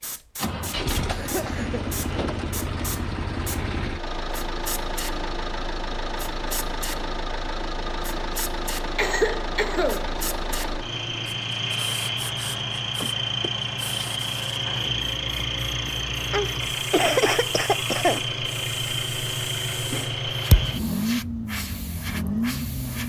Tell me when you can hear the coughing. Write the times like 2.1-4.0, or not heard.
1.1-1.9, 8.9-10.1, 16.3-18.2.